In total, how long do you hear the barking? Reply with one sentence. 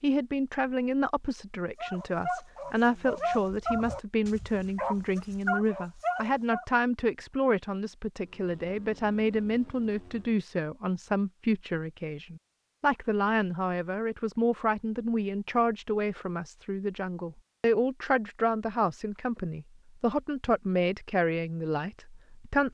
The barking can be heard for 5 seconds in total.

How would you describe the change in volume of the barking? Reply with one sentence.
The volume of the barking goes down, then up.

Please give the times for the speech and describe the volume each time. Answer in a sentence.
You can hear the speech from 0.0 to 22.7 s, at a steady volume.